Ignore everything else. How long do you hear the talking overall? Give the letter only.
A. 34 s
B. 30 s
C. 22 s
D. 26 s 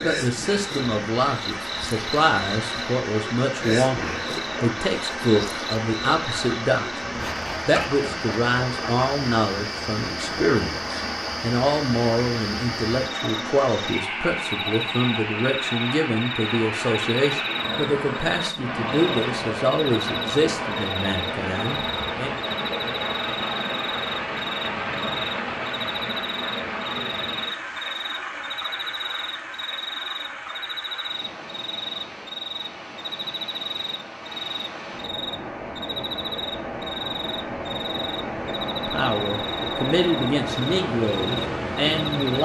D.